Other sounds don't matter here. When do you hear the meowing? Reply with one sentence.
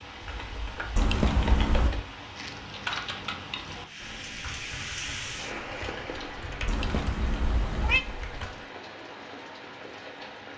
You can hear the meowing from 0.9 to 1.9 s and from 6.7 to 8.1 s.